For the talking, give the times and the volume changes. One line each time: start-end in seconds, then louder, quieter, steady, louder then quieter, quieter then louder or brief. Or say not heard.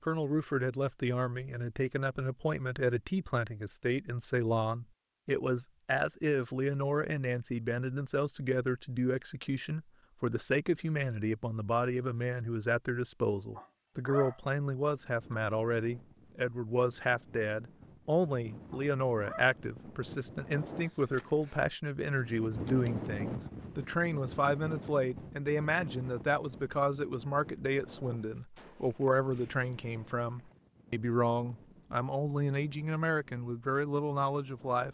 0.0-34.8 steady.